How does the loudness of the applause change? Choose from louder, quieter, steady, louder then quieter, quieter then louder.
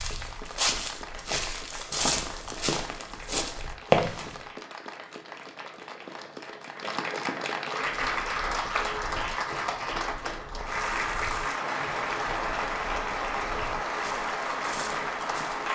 louder.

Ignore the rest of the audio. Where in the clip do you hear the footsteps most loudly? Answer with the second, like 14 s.
4 s.